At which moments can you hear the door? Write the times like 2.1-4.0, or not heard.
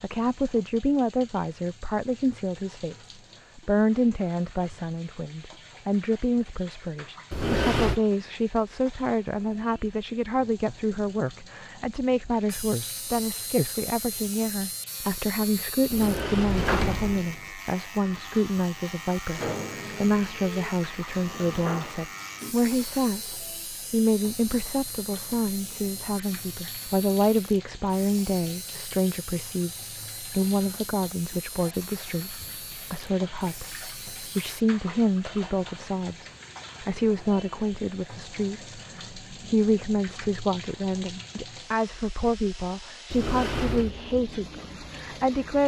7.3-8.0, 15.9-17.5, 43.1-43.9.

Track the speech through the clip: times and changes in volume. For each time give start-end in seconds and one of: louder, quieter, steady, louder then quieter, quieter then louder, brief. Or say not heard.
0.0-45.6 steady.